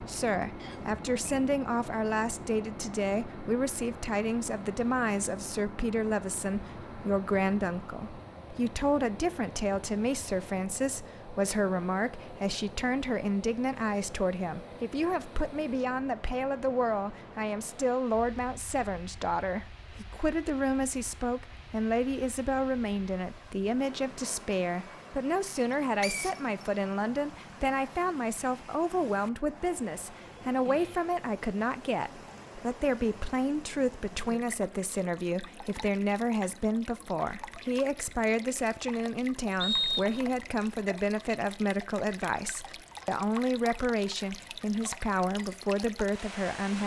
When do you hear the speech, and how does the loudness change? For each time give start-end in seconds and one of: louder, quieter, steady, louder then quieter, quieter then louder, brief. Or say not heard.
0.0-46.8 steady.